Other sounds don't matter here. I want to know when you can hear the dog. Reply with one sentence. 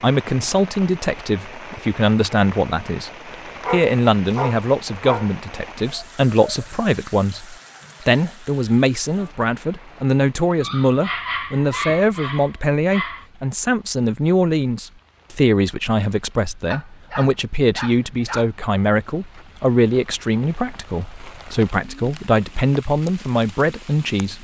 The dog can be heard from 3.5 to 5.8 s, from 10.6 to 13.2 s and from 16.7 to 18.5 s.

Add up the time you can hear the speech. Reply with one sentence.
You can hear the speech for 24 seconds altogether.